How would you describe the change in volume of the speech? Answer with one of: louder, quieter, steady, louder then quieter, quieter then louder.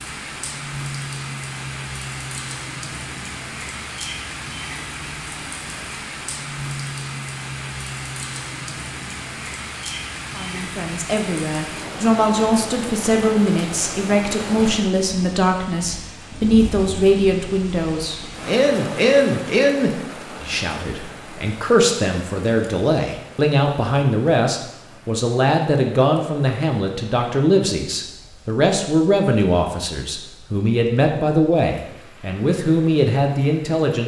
steady.